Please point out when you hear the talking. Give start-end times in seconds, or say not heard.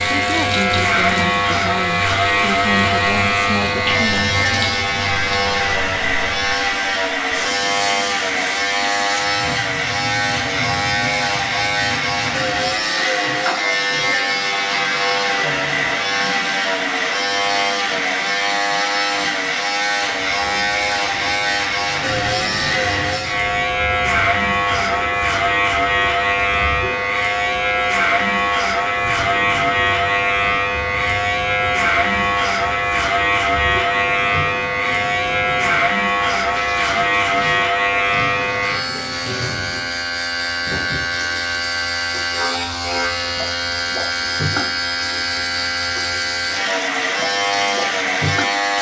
0.0-4.3.